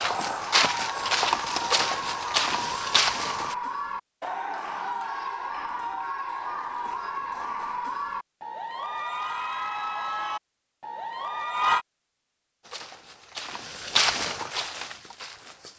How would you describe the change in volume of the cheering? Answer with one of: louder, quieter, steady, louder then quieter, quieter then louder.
steady.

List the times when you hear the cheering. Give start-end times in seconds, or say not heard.
0.0-11.8.